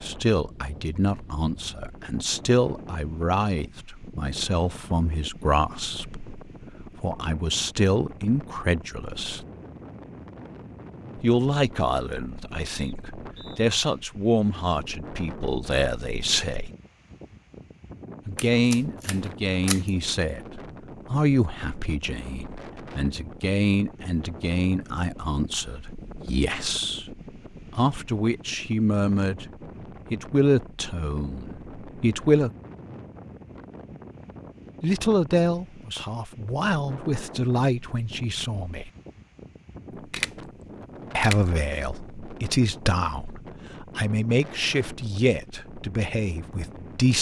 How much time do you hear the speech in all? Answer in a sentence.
You can hear the speech for 39 seconds altogether.